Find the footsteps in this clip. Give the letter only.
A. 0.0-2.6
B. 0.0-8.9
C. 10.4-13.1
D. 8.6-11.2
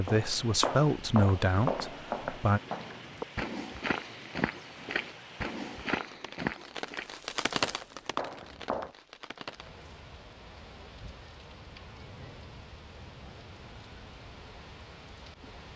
B.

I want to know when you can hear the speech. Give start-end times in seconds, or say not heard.
0.0-2.6.